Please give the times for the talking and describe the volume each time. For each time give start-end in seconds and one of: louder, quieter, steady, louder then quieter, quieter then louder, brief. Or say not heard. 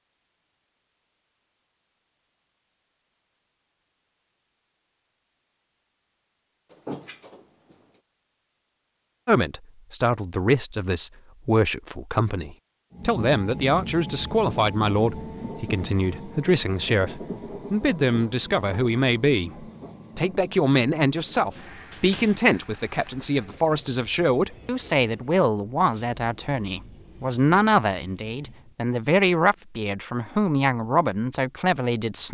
9.2-32.2 steady.